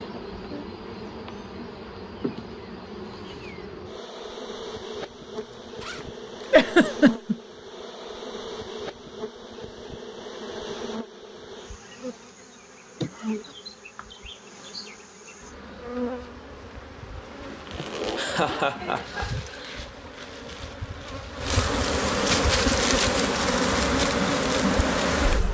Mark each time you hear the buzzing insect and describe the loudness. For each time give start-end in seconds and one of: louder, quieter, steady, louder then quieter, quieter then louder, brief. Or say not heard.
0.0-25.4 louder.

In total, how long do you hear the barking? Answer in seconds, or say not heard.
not heard.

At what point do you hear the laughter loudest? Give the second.
7 s.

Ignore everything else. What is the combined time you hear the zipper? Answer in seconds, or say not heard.
4 s.